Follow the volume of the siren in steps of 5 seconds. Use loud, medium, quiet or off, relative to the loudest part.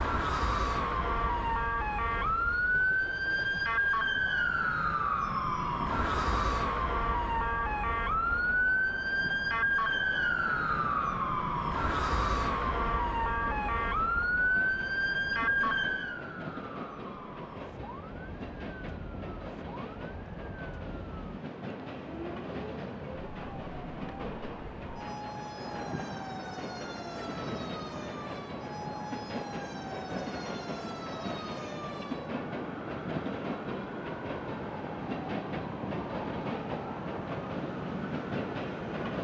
loud, loud, loud, medium, quiet, quiet, quiet, quiet.